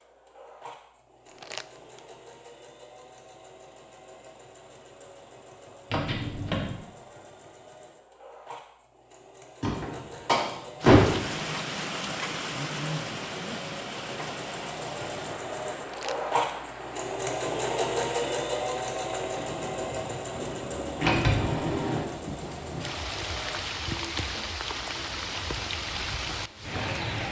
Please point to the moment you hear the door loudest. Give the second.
11 s.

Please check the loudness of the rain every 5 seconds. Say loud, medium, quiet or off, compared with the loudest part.
off, off, loud, medium, loud, loud.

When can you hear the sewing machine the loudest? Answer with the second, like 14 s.
18 s.